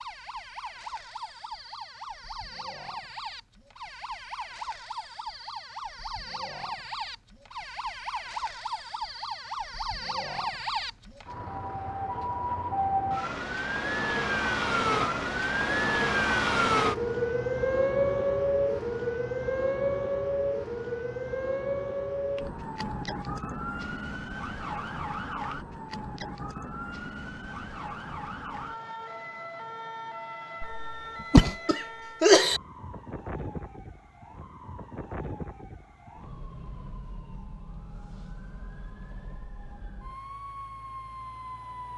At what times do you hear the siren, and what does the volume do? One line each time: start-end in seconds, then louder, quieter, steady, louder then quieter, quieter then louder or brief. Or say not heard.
0.0-41.9 louder then quieter.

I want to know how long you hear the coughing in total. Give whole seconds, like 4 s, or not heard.
2 s.